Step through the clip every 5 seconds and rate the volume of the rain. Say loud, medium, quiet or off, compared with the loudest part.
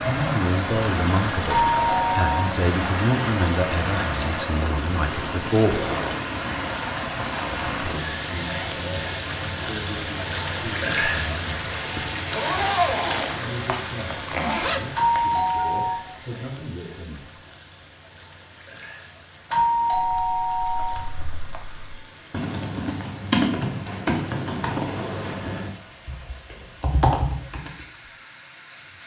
loud, loud, loud, quiet, quiet, quiet.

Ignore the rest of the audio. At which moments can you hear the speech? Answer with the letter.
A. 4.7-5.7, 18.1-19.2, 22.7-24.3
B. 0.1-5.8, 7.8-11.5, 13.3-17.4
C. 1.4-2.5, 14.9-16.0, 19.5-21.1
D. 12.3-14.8
B.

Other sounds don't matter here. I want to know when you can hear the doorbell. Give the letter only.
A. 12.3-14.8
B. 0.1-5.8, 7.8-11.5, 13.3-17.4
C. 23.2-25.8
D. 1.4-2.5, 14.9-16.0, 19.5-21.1
D.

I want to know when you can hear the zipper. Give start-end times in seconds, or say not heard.
12.3-14.8.